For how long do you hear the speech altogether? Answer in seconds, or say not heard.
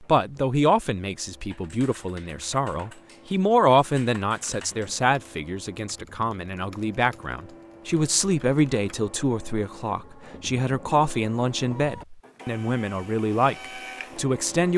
15 s.